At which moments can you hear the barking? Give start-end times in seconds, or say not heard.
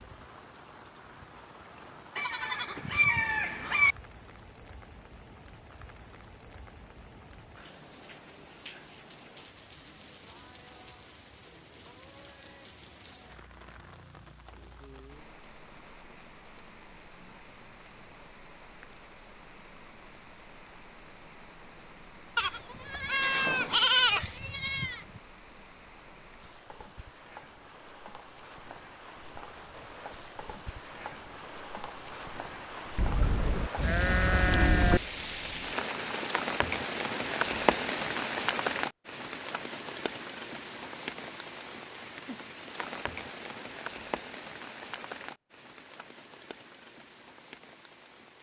not heard.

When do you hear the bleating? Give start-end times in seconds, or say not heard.
2.1-4.0, 22.4-25.1, 33.0-35.0.